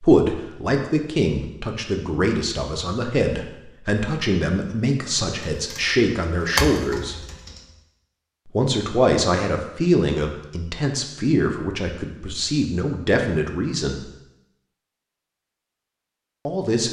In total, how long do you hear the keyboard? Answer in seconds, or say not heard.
2 s.